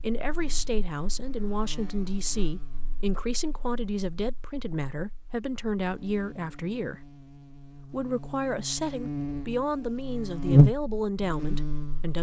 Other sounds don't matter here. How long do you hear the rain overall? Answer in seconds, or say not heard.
not heard.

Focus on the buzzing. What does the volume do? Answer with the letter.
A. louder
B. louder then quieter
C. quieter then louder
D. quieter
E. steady
C.